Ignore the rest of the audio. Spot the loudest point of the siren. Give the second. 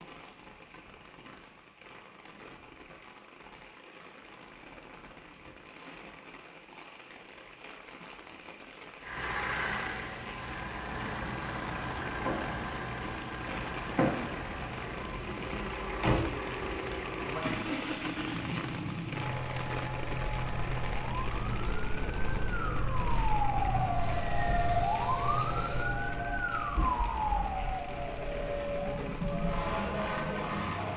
25 s.